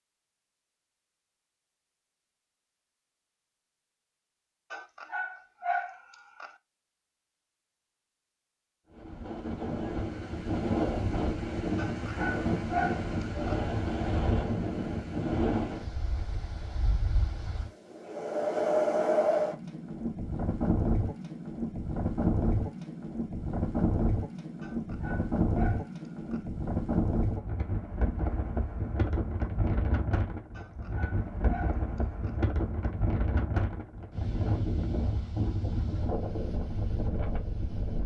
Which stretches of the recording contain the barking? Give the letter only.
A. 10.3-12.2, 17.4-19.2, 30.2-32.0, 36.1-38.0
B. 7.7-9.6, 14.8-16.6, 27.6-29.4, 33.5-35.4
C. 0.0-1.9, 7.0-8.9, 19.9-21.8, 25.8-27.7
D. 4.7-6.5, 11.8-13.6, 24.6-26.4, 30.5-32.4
D.